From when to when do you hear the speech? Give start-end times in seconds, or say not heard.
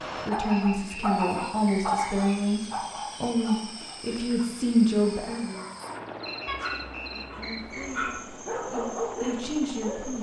0.2-5.7, 7.2-10.1.